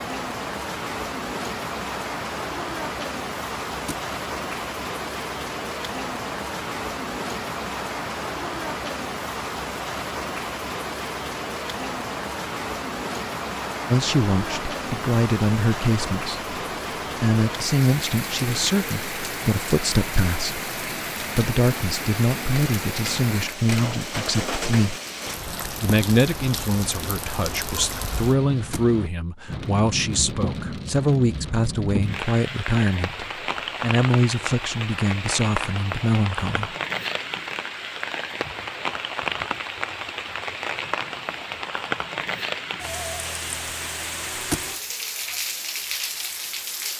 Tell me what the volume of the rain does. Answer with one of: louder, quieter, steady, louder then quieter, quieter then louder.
steady.